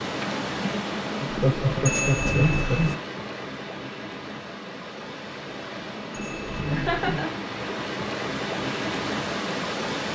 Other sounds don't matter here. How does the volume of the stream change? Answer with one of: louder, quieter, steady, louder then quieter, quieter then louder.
quieter then louder.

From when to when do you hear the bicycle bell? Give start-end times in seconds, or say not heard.
1.9-3.0, 6.1-7.2.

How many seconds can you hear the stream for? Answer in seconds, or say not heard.
10 s.